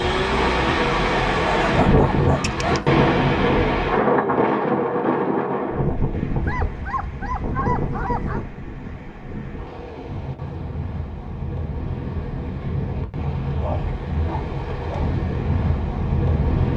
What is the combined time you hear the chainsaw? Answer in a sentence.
The chainsaw can be heard for 2 seconds in total.